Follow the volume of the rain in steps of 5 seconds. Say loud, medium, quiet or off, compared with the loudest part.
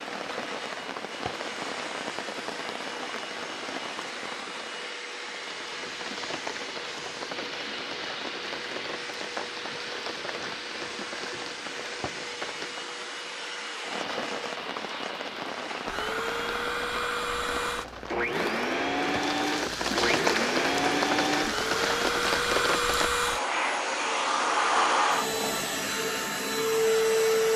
medium, medium, medium, medium, loud, off.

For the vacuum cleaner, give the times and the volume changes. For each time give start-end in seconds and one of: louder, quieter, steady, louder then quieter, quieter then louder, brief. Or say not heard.
0.0-27.5 louder.